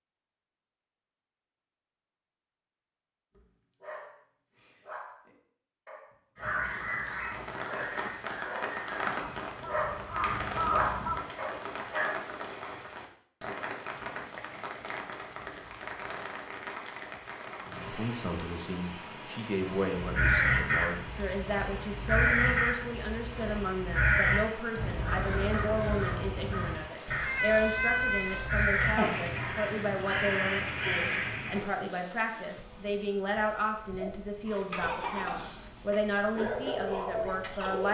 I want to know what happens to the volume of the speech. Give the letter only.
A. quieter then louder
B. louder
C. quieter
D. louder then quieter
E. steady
E.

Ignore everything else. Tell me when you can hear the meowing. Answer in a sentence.
The meowing can be heard from 27.1 to 28.6 s.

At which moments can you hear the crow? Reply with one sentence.
You can hear the crow from 6.3 to 11.2 s and from 19.9 to 31.6 s.